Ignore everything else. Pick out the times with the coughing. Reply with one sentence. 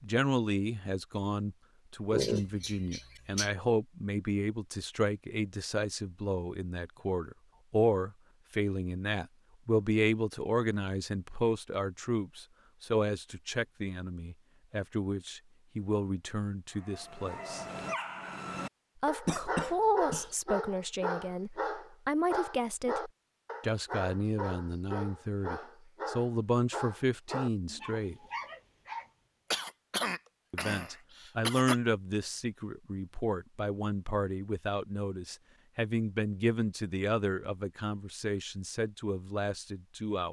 The coughing can be heard from 2.1 to 3.5 s, from 19.2 to 20.3 s and from 29.5 to 31.8 s.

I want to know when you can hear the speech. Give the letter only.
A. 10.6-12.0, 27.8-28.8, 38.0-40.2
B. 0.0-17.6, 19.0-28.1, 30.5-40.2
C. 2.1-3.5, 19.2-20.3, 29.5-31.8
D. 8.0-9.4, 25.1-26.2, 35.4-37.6
B.